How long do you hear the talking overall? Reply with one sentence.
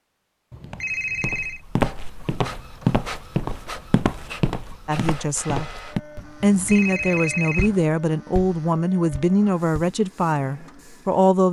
You can hear the talking for 6 seconds altogether.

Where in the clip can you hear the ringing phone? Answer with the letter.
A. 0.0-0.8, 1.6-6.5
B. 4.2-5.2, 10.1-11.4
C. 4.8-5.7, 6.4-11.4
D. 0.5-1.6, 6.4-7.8
D.